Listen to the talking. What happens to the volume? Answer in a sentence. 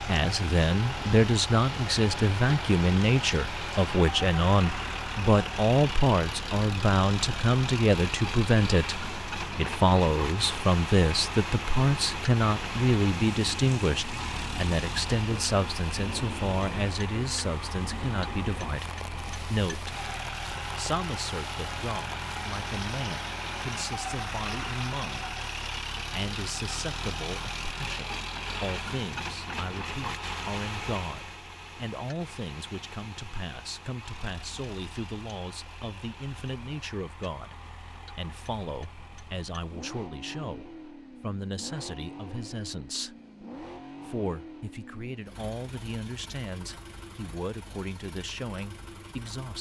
The volume of the talking goes down.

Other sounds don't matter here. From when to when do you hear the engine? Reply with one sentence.
The engine can be heard from 0.0 to 49.5 s.